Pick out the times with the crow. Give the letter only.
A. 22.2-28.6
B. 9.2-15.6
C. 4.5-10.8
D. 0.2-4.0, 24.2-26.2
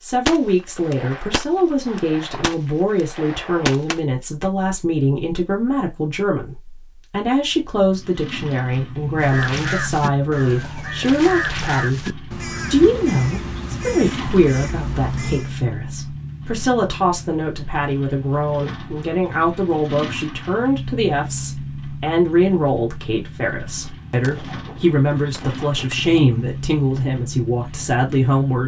B.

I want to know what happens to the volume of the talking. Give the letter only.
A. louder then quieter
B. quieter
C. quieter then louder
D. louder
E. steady
E.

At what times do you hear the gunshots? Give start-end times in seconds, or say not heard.
0.2-4.0, 24.2-26.2.